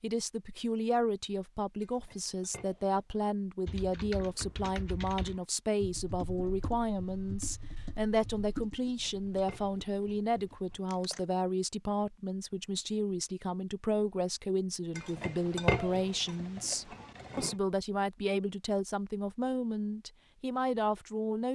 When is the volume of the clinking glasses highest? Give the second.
16 s.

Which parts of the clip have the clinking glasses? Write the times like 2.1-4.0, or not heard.
1.8-3.0, 8.8-10.9, 14.9-17.6.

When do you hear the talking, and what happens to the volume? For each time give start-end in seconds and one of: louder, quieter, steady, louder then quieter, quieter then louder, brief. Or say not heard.
0.0-21.5 steady.